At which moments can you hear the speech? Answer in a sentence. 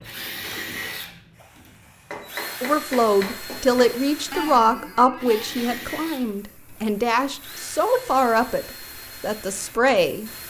The speech can be heard from 2.6 to 10.3 s.